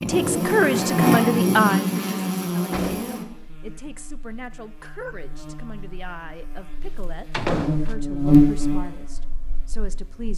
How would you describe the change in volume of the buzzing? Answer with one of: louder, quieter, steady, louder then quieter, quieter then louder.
quieter then louder.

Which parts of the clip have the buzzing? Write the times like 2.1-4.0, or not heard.
0.0-10.3.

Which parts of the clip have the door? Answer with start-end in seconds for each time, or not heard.
2.7-3.2, 7.3-8.0.